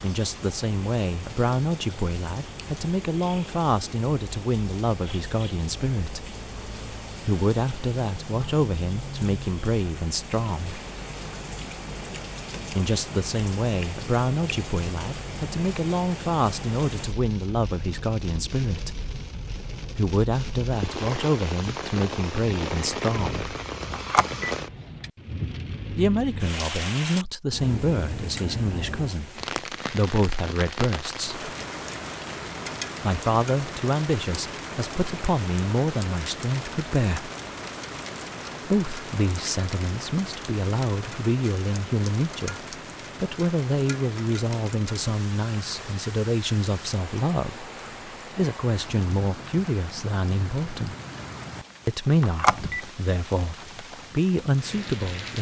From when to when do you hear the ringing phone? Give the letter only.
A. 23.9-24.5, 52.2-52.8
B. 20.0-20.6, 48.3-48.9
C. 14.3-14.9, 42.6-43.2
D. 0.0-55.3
A.